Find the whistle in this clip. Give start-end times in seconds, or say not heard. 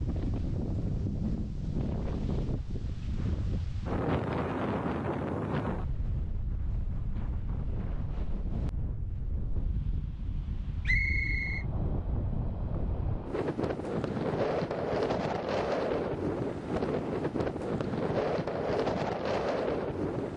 10.8-11.7.